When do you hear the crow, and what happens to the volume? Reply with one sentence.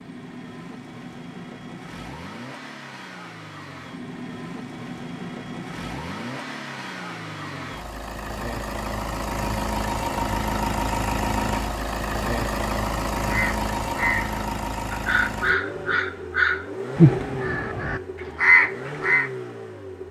The crow can be heard from 13.2 to 19.3 s, getting louder.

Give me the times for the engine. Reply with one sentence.
You can hear the engine from 0.0 to 20.0 s.